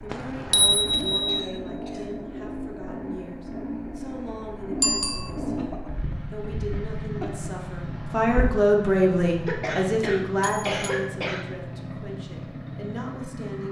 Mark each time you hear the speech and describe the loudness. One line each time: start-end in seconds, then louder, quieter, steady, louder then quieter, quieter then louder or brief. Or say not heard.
0.0-13.6 louder then quieter.